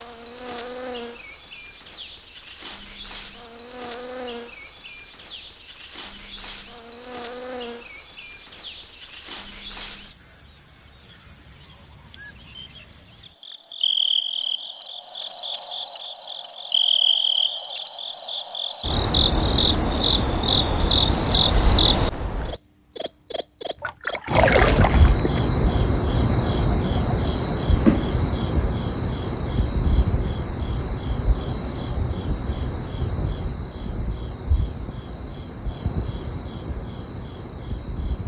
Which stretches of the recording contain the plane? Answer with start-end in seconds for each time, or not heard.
not heard.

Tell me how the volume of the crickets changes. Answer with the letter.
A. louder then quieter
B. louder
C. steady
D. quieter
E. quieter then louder
A.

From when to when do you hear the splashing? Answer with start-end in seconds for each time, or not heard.
23.8-25.4.